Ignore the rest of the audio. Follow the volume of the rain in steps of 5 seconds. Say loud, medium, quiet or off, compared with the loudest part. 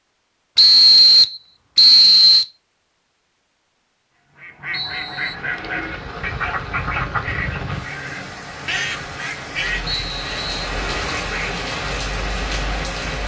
off, medium, loud.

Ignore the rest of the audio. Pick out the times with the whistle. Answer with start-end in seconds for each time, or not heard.
0.6-2.5, 4.7-5.3, 9.8-10.7.